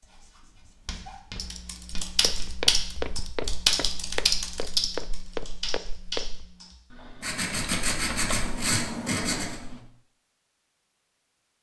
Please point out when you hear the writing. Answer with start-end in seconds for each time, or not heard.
0.0-2.5, 7.2-9.6.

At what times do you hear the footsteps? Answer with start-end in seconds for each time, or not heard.
0.6-6.5.